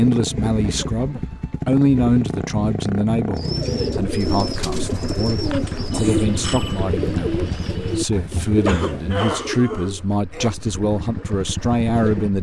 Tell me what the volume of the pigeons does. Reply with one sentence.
The volume of the pigeons goes down.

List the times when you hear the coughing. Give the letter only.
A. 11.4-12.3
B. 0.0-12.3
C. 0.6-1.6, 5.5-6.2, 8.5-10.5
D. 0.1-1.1
C.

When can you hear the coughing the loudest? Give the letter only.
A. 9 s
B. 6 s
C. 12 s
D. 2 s
A.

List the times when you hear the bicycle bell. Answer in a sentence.
The bicycle bell can be heard from 5.9 to 6.8 s.